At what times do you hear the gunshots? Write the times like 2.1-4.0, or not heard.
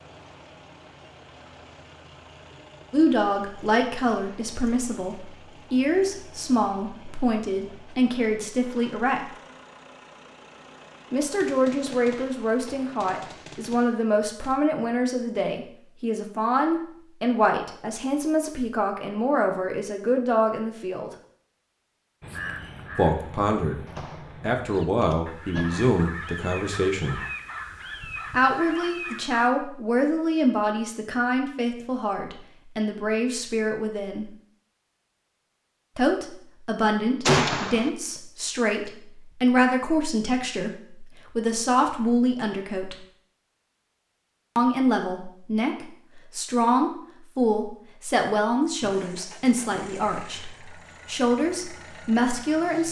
11.4-14.6, 23.9-24.3, 25.0-25.9, 37.2-37.9.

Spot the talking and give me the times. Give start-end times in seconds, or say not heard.
2.9-9.2, 11.1-21.1, 22.9-27.2, 28.3-34.3, 36.0-43.0, 44.5-52.8.